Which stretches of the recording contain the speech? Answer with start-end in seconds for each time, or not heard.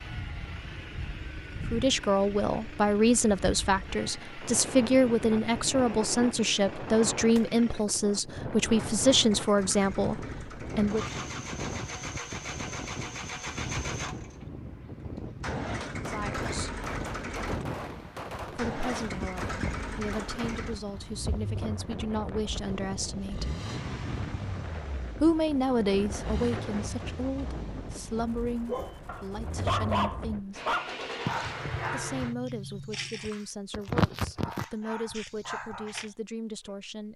1.6-11.1, 16.0-16.8, 18.5-23.5, 25.2-30.6, 31.9-37.1.